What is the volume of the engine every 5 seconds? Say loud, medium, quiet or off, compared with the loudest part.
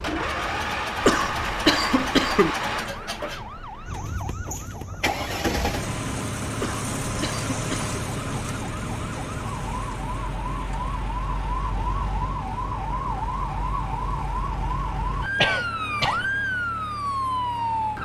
loud, loud, medium, medium.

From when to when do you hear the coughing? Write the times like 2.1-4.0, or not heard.
1.0-2.5, 6.6-8.0, 15.3-16.3.